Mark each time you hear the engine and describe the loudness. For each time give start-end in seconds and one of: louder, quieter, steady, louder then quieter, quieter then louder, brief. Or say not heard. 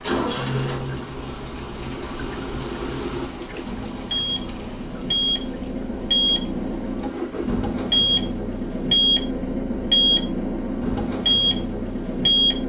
0.0-12.6 louder.